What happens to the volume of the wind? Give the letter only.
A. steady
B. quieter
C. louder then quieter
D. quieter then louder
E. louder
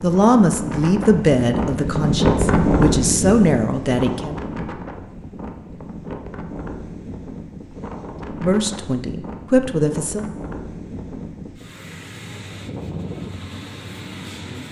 B.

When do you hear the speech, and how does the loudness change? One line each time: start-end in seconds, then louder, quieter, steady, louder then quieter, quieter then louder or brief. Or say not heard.
0.0-4.3 quieter then louder
8.4-10.2 brief.